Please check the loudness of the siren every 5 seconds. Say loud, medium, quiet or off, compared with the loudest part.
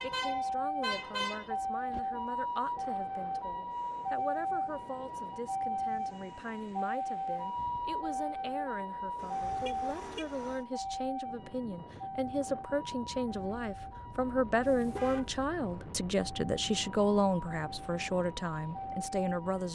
loud, loud, medium, medium.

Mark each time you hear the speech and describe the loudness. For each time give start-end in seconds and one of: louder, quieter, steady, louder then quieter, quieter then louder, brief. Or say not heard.
0.0-19.6 louder.